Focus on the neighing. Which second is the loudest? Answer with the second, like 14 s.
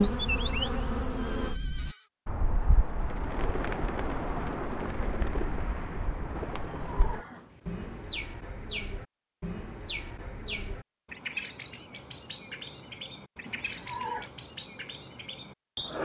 14 s.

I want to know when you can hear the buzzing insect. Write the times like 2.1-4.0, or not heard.
0.0-1.6.